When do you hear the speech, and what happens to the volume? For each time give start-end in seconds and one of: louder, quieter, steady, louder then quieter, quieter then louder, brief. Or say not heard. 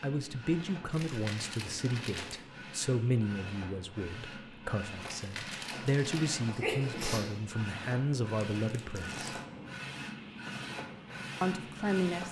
0.0-9.2 quieter then louder
11.4-12.2 brief.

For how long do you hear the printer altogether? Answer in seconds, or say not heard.
12 s.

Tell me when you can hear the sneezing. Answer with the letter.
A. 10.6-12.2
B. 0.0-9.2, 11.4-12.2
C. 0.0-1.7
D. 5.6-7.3
D.